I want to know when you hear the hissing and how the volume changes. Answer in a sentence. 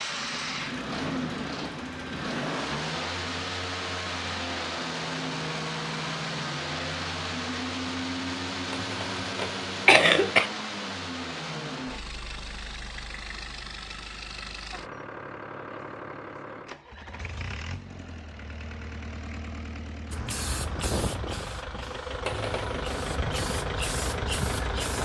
You can hear the hissing from 20.1 to 24.9 s, getting quieter then louder.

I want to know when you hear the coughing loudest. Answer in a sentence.
The loudest moment of the coughing is at 10 seconds.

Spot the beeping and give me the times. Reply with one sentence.
The beeping can't be heard in this clip.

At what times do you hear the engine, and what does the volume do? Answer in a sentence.
You can hear the engine from 0.0 to 24.9 s, getting quieter then louder.